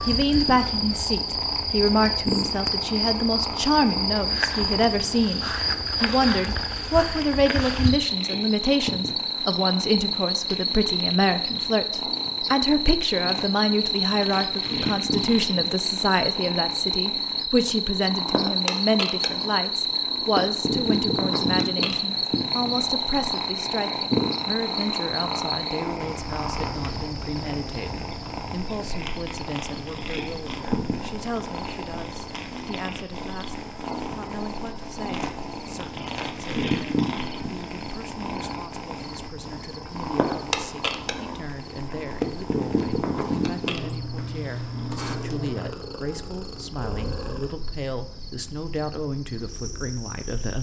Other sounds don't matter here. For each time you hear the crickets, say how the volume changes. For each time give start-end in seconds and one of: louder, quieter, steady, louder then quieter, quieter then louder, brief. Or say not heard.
0.0-50.5 quieter.